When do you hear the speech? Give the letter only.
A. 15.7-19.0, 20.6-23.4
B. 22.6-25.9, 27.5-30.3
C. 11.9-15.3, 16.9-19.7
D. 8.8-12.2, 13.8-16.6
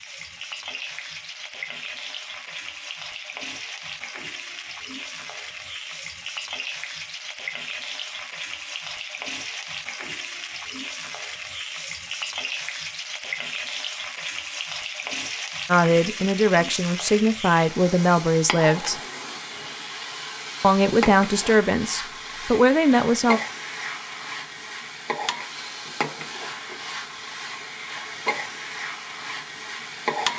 A.